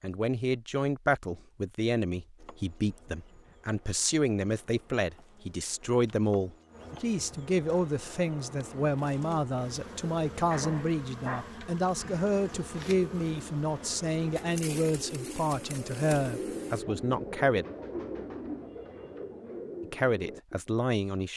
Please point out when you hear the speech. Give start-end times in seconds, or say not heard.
0.0-17.6, 19.8-21.3.